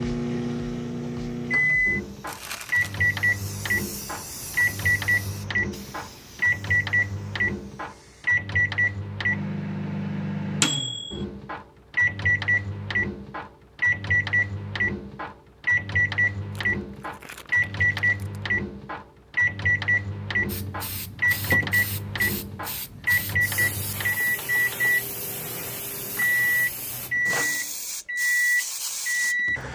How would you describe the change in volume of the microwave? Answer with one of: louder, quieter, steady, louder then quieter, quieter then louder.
steady.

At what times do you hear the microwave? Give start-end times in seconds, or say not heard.
0.0-29.6.